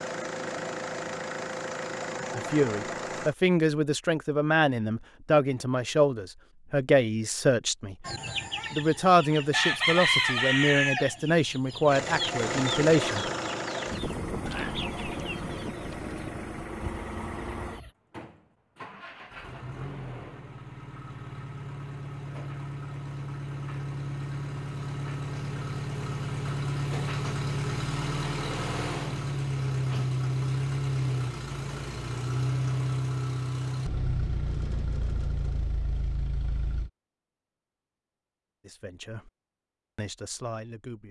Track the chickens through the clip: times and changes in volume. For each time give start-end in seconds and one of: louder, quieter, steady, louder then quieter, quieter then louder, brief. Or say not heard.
8.1-17.9 quieter.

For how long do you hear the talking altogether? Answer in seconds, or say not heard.
12 s.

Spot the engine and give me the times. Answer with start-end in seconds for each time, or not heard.
0.0-3.4, 11.8-36.9.